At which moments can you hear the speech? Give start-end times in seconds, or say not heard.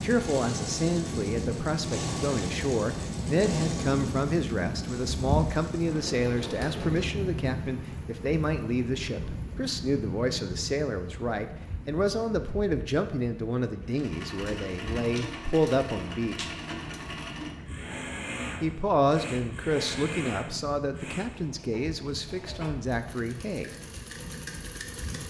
0.0-16.5, 18.6-23.7.